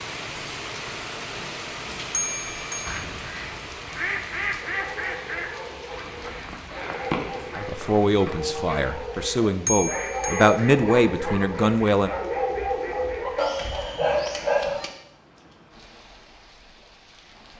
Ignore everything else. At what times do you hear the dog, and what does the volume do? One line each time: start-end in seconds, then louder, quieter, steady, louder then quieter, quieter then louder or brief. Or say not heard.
4.6-14.9 louder.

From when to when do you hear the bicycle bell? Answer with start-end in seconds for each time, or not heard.
2.1-3.0, 9.7-10.6.